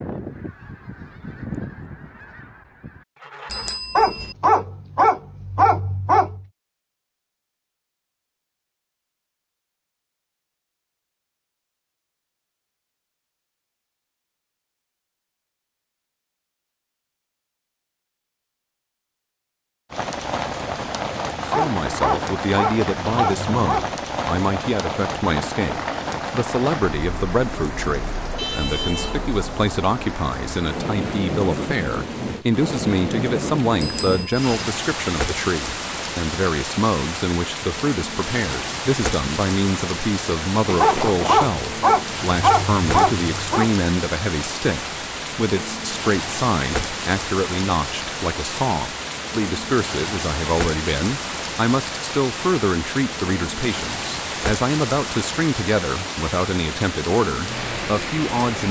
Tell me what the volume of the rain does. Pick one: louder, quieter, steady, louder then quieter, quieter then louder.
steady.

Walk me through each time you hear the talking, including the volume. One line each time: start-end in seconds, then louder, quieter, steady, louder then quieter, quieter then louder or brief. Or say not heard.
21.4-58.6 steady.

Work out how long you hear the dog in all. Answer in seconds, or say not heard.
8 s.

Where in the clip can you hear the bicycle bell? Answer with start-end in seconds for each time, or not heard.
3.5-4.3, 33.8-34.5, 40.6-41.4.